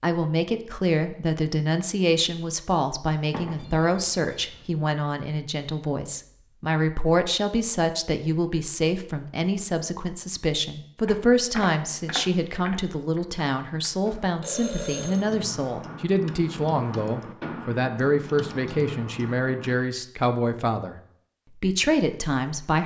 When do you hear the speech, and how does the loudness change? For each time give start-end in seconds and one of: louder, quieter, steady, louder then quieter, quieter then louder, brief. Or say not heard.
0.0-22.8 steady.